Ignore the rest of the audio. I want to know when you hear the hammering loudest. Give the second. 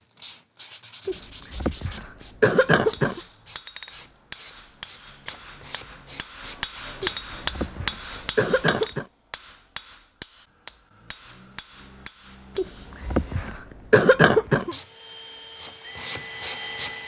7 s.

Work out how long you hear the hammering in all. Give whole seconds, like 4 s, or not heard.
11 s.